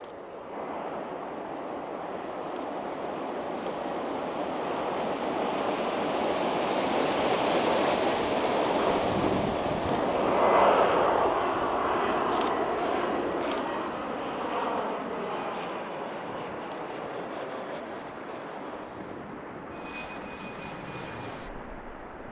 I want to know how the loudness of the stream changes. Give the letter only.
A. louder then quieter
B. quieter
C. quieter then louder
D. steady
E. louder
A.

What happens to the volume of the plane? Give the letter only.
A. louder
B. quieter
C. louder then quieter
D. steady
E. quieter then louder
C.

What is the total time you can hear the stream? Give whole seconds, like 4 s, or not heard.
22 s.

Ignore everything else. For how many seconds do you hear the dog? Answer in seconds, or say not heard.
not heard.